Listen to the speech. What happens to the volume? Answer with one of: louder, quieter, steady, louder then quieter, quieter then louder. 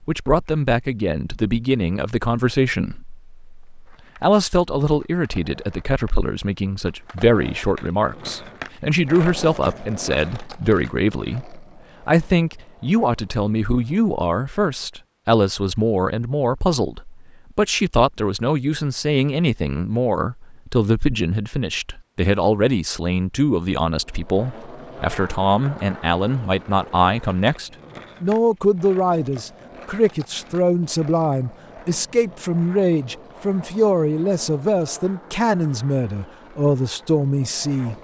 steady.